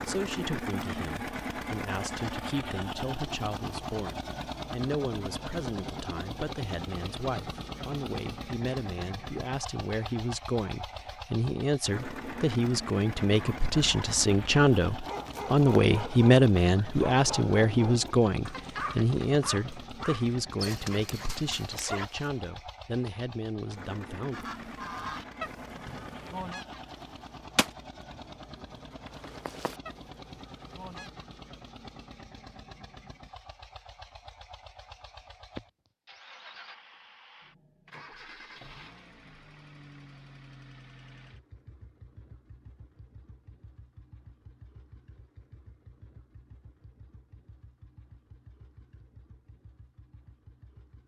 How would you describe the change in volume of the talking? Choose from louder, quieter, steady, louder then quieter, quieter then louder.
louder then quieter.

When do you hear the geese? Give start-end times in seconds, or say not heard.
24.3-31.2.